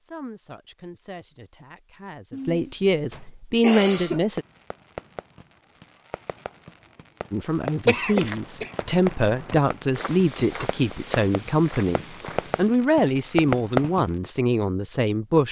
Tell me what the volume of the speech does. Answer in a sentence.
The loudness of the speech goes up.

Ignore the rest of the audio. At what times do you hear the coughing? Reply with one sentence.
The coughing can be heard from 2.3 to 4.2 s and from 7.8 to 8.7 s.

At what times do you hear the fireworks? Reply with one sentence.
You can hear the fireworks from 4.3 to 14.1 s.